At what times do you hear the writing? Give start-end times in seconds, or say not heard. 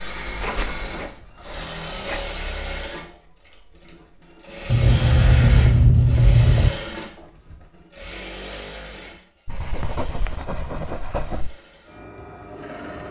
0.2-2.5, 4.7-6.7, 9.4-11.5.